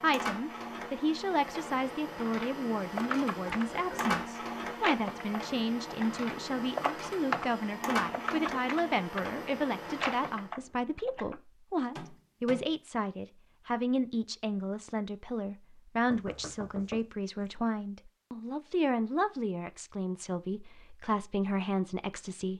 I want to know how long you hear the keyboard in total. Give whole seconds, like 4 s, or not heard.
9 s.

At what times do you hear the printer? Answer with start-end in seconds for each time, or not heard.
0.0-10.5.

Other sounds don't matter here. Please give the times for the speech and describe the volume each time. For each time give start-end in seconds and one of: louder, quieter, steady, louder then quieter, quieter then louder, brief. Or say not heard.
0.0-22.5 steady.